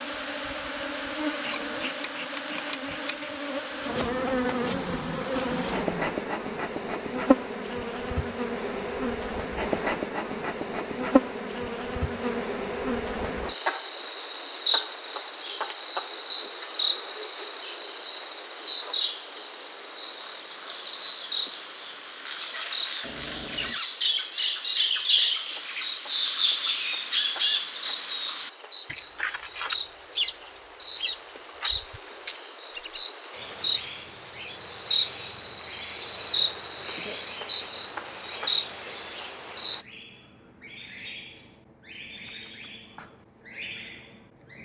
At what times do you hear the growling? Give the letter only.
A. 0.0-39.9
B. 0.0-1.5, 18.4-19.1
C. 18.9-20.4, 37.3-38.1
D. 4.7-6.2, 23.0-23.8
D.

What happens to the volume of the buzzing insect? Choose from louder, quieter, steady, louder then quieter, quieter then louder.
quieter then louder.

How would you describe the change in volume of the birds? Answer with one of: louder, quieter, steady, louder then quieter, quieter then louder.
louder then quieter.